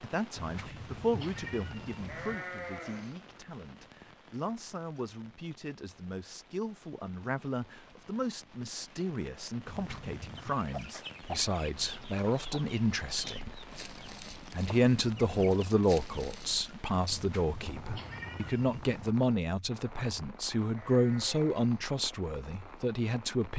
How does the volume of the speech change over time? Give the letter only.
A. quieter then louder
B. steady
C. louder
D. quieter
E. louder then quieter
C.